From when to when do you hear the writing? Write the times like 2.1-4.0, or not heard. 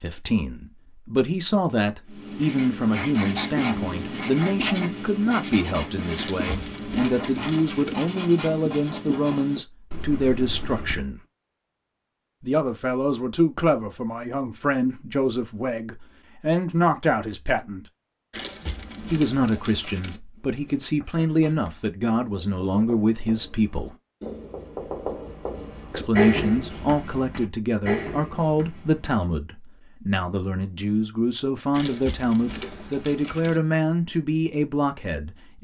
2.0-11.1, 20.4-29.1.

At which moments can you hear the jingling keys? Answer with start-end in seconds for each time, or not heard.
6.2-8.0, 18.3-20.2, 31.7-33.6.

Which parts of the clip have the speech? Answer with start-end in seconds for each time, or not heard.
0.0-11.2, 12.4-17.9, 19.0-23.9, 25.9-35.6.